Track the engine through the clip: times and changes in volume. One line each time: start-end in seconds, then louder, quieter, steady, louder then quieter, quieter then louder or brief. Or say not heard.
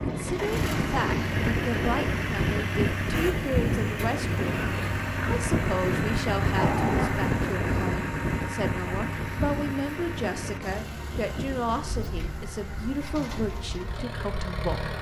0.0-14.9 quieter.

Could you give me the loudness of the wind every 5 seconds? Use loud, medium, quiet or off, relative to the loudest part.
loud, loud, medium.